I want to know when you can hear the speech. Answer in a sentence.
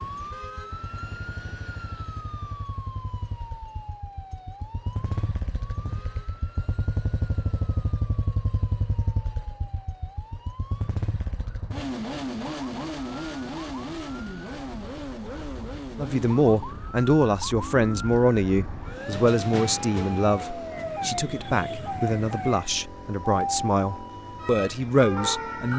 The speech can be heard from 15.9 to 25.7 s.